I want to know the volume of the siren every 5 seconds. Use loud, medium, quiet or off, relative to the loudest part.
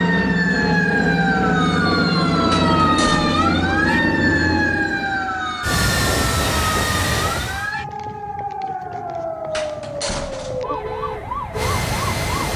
loud, medium, medium.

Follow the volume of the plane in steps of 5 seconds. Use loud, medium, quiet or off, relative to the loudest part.
loud, loud, medium.